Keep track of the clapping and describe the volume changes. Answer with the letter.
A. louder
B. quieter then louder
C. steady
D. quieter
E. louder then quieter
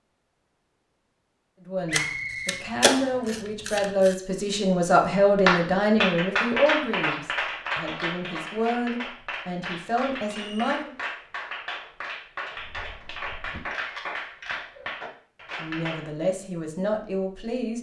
D.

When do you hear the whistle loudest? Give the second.
2 s.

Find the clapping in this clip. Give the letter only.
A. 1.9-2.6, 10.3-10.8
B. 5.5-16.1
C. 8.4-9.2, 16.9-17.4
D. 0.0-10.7
B.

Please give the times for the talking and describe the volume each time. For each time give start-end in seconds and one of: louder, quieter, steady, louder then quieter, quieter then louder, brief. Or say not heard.
1.6-10.9 louder then quieter
15.6-17.7 brief.